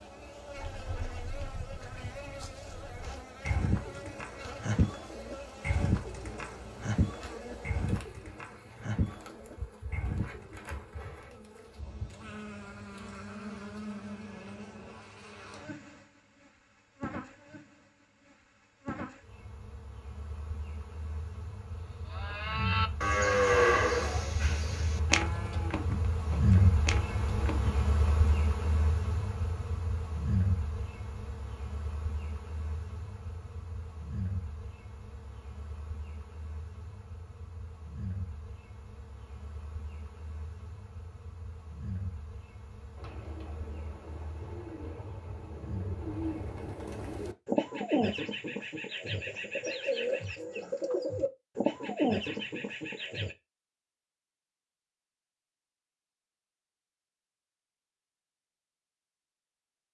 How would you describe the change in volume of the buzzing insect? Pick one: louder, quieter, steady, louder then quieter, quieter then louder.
louder then quieter.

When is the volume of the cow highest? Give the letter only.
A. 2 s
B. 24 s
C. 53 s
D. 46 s
B.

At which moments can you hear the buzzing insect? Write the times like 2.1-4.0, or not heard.
0.0-46.6.